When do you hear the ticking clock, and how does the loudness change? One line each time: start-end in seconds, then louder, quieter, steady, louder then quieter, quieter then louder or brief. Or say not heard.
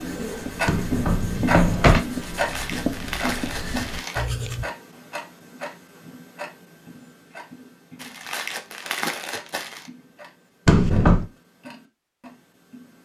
0.0-13.0 quieter.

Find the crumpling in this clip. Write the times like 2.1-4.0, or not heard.
2.2-4.2, 8.0-9.9.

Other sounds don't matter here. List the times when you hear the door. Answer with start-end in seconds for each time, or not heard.
0.7-2.0, 10.7-11.2.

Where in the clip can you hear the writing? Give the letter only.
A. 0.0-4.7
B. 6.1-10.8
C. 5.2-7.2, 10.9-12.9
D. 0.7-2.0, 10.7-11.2
A.